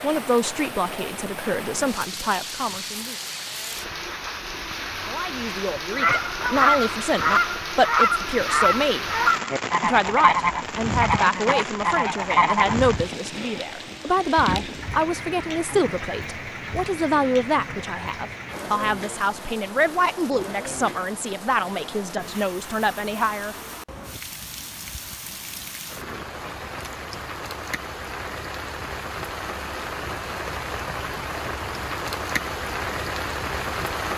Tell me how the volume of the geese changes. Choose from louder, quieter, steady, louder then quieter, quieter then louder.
steady.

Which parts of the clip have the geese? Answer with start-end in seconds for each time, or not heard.
6.0-12.8.